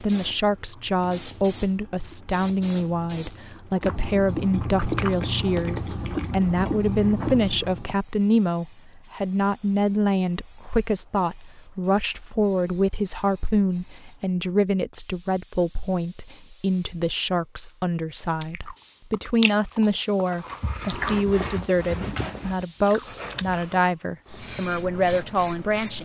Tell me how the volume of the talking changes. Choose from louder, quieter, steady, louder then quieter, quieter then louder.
steady.